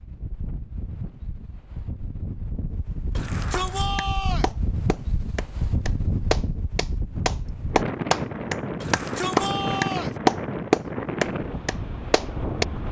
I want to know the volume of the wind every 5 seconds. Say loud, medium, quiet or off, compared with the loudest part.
medium, loud, loud.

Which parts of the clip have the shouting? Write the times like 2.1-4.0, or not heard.
3.1-4.5, 8.8-10.2.